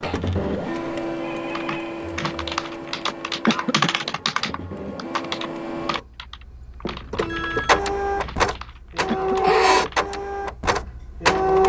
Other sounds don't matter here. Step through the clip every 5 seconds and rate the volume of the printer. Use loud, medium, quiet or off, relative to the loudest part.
medium, loud, loud.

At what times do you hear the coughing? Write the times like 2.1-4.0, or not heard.
3.5-4.0, 9.1-9.6.